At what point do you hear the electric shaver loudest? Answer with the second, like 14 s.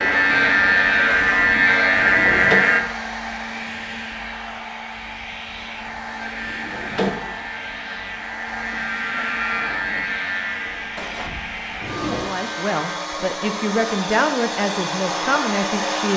2 s.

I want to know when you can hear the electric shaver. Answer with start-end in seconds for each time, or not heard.
0.0-2.8, 6.0-13.0.